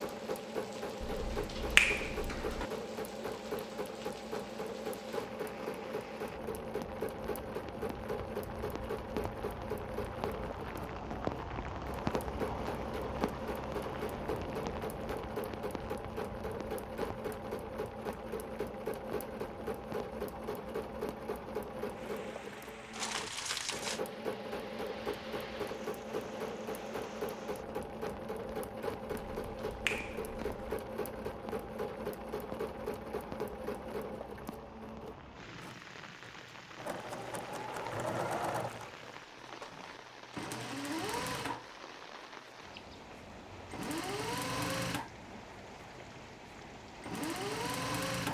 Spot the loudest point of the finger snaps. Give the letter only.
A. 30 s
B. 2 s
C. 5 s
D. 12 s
B.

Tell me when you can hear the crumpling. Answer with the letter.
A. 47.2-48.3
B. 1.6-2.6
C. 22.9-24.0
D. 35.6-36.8
C.